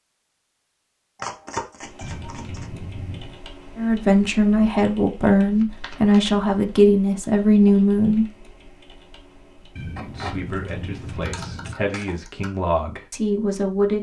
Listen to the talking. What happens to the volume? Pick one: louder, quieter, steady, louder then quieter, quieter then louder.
quieter then louder.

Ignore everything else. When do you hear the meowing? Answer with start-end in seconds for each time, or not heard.
2.0-3.4, 9.8-11.8.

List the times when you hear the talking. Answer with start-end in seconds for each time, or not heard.
3.8-8.3, 9.9-13.9.